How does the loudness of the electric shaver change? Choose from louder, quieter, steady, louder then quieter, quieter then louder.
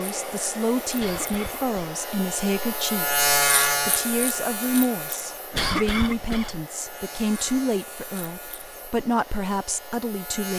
louder then quieter.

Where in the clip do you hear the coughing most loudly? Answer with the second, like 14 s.
6 s.